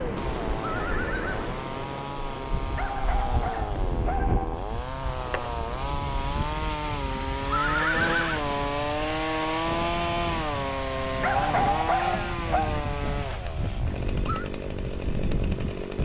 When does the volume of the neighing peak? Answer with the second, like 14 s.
8 s.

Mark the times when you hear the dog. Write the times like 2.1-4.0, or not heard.
2.8-4.5, 11.2-12.8.